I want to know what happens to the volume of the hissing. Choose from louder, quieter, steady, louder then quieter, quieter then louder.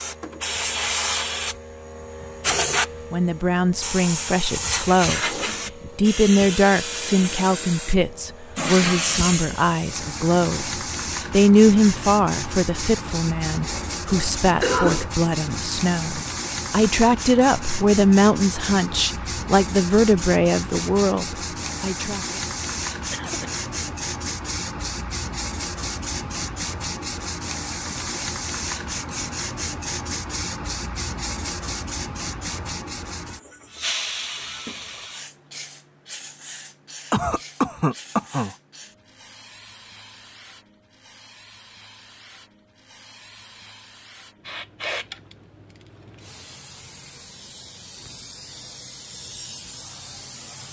quieter.